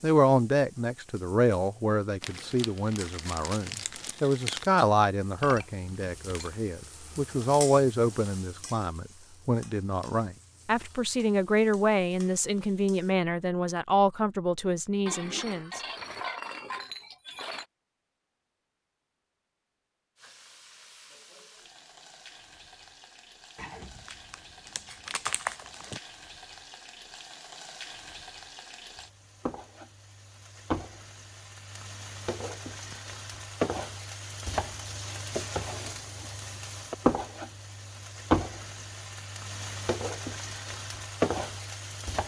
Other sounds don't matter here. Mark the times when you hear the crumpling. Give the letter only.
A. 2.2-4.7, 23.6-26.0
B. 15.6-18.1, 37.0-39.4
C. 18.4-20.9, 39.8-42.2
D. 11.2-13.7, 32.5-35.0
A.